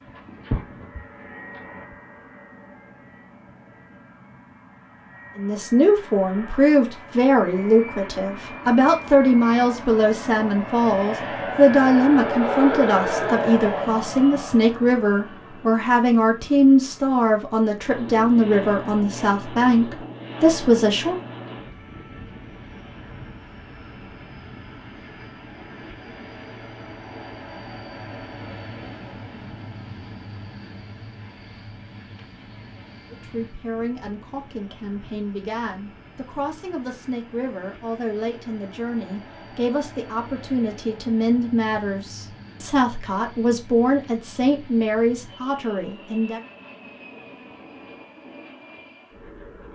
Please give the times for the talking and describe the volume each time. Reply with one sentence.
The talking can be heard from 5.3 to 21.2 s, at a steady volume; and from 33.1 to 46.4 s, getting louder.